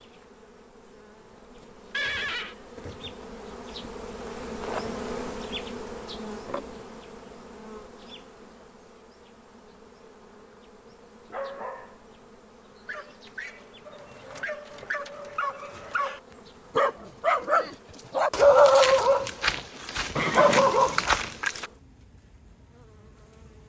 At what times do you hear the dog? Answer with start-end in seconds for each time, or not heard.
11.2-12.1, 12.8-21.6.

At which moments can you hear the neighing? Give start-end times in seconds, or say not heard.
1.9-2.5, 20.1-21.1.